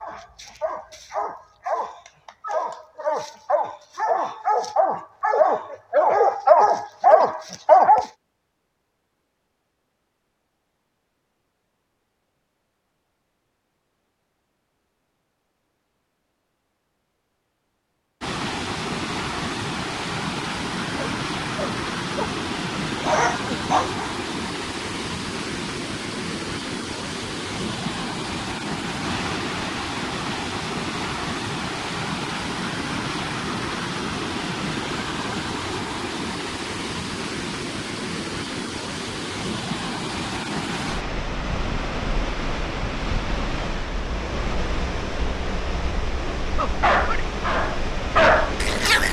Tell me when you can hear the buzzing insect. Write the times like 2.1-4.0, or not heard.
not heard.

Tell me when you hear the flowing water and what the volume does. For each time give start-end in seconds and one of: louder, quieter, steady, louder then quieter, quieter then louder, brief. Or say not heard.
18.2-49.0 steady.